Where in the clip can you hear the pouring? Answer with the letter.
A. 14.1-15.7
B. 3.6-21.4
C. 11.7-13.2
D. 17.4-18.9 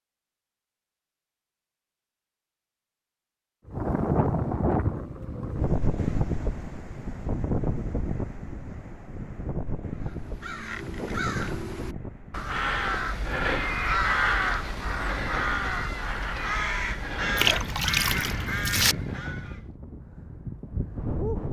D.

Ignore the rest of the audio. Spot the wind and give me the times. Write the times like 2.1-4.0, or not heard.
3.6-21.4.